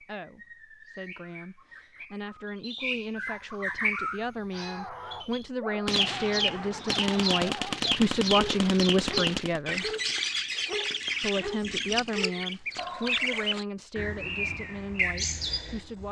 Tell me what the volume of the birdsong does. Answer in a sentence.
The loudness of the birdsong goes up.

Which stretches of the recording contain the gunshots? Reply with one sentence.
You can hear the gunshots from 5.8 to 9.6 s.